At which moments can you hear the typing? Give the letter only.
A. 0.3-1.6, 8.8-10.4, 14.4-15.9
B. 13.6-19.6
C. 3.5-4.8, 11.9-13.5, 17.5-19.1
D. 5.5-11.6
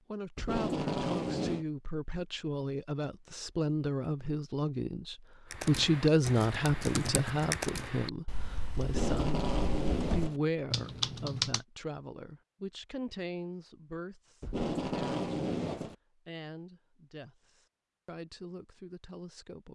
D.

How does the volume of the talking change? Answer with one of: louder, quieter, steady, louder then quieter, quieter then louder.
louder then quieter.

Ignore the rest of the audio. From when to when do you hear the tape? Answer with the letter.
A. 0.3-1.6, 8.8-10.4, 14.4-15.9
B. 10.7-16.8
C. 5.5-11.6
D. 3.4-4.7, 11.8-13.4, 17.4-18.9
A.